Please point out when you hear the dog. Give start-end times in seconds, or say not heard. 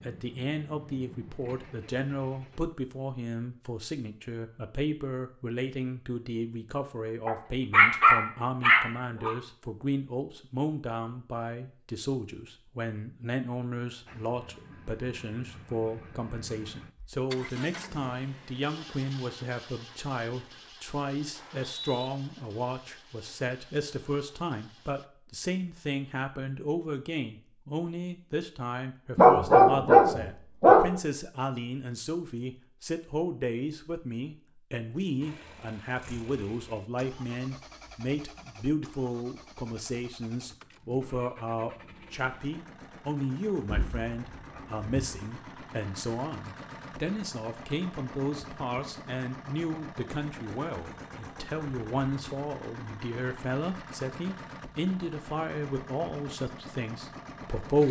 7.2-9.3, 29.1-30.9, 43.6-45.2.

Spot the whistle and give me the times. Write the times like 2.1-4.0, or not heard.
21.3-22.1.